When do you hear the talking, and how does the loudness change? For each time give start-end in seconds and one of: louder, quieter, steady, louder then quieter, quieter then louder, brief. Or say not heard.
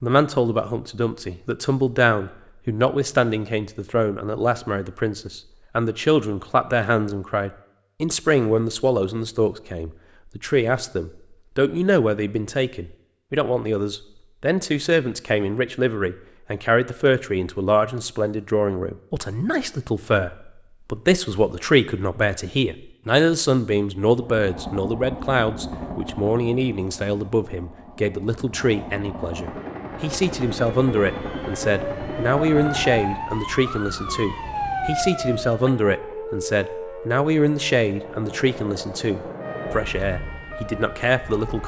0.0-41.6 steady.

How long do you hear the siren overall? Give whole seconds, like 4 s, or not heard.
12 s.